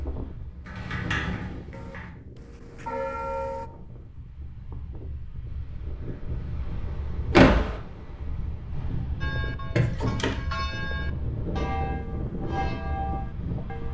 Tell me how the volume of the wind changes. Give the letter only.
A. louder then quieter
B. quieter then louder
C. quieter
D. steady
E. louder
E.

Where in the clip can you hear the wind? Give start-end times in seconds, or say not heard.
0.0-13.8.